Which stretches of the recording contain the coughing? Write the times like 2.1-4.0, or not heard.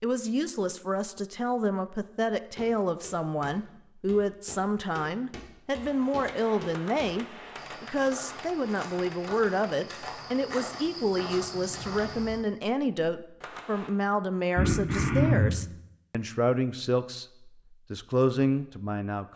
14.6-15.7.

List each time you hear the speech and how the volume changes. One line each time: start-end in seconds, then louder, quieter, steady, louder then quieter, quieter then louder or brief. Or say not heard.
0.0-19.3 steady.